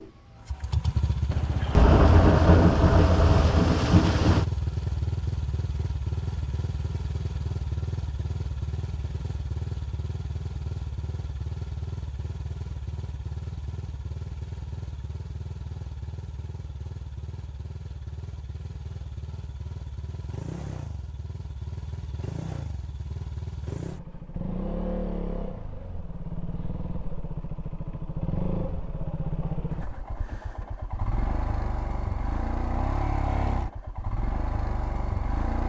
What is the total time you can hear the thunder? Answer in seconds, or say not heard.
3 s.